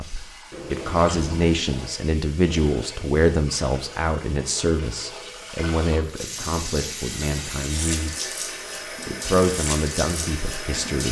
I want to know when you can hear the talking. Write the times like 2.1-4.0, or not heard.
0.0-11.0.